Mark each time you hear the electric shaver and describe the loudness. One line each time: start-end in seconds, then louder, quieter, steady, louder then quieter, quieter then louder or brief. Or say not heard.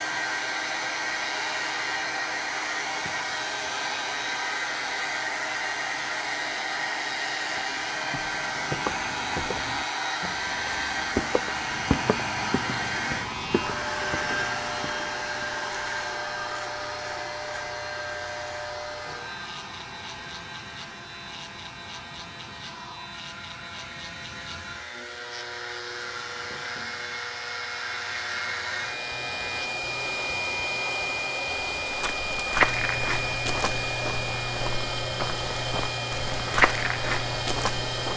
0.0-38.1 steady.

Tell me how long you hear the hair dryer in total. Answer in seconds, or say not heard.
38 s.